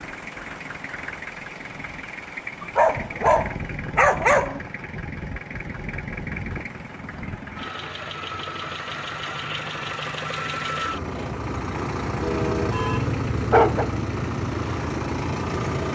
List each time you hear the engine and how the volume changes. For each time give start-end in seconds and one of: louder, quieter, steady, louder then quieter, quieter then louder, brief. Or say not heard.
0.0-15.9 louder.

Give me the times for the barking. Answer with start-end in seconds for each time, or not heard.
2.6-4.6, 12.2-13.9.